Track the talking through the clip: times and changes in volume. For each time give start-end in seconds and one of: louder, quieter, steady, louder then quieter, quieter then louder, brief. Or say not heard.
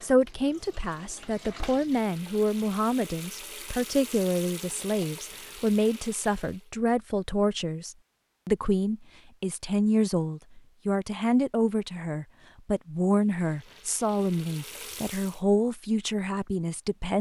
0.0-17.1 steady.